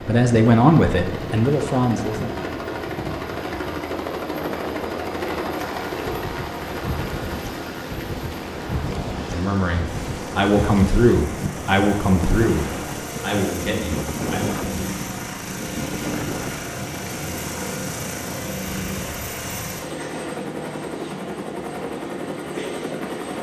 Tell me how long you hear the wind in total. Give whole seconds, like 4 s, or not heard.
19 s.